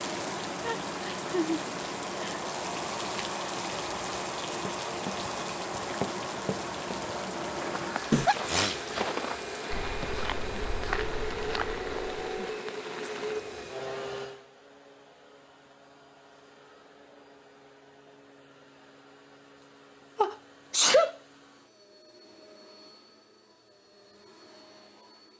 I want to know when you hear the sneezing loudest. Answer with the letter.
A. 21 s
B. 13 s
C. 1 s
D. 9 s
A.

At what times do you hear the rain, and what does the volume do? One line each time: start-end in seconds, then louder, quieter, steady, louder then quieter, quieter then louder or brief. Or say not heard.
0.0-13.8 quieter.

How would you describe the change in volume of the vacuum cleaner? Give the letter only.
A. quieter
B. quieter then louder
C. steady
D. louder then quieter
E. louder
A.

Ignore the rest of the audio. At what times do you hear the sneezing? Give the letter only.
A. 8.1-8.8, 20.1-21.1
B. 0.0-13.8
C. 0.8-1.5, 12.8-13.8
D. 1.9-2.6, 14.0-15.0
A.